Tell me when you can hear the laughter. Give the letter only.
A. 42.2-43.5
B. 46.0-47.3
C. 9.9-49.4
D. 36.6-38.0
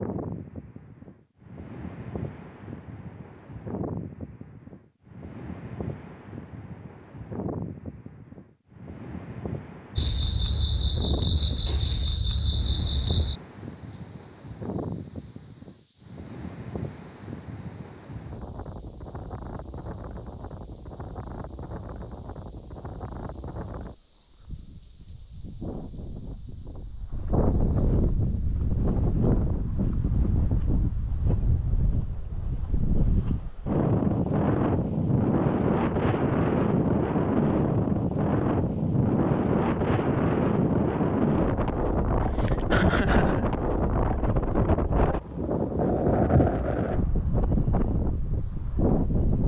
A.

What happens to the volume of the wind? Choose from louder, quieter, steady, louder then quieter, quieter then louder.
louder.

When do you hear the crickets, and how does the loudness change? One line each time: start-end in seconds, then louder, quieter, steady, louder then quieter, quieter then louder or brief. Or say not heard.
9.9-49.4 quieter.